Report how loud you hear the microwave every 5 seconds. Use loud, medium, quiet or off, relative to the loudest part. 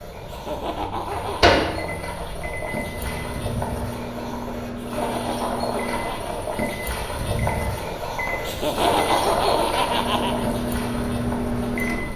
loud, medium, loud.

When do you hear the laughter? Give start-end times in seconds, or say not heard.
0.2-1.6, 4.8-6.3, 8.4-10.5.